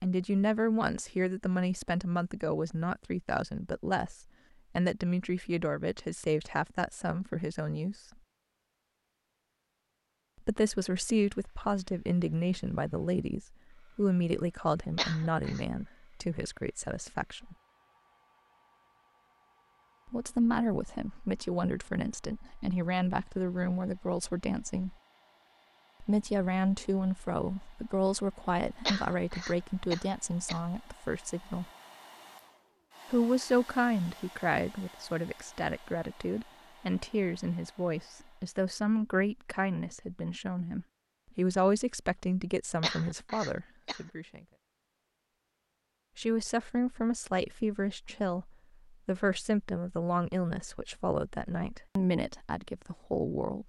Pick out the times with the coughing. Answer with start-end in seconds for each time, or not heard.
14.9-15.7, 28.9-30.6, 42.8-44.0.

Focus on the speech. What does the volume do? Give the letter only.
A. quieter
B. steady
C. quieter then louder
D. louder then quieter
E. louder
B.